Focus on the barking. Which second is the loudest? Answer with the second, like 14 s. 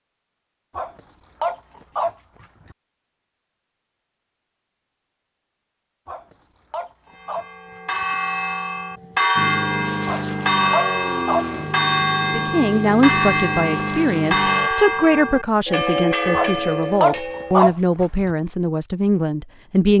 18 s.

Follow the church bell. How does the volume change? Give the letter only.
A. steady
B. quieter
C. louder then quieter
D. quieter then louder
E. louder
A.